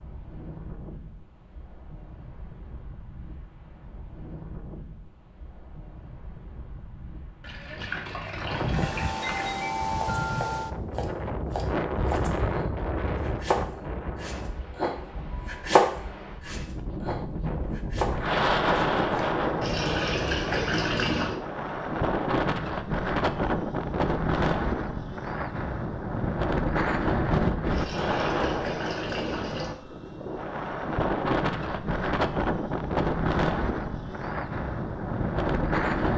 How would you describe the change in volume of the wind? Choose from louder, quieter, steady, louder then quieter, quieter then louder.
louder.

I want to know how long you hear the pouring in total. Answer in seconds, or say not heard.
6 s.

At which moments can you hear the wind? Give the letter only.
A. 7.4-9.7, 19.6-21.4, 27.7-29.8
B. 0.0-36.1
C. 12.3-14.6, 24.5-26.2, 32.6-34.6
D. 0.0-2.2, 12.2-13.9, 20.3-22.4
B.